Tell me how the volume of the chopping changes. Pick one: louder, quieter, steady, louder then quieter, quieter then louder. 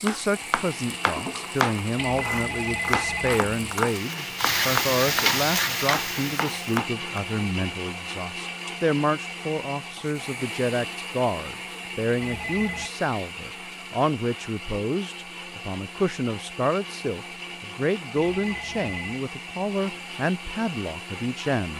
steady.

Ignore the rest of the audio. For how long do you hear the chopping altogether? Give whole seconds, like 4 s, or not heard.
7 s.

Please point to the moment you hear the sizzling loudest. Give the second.
5 s.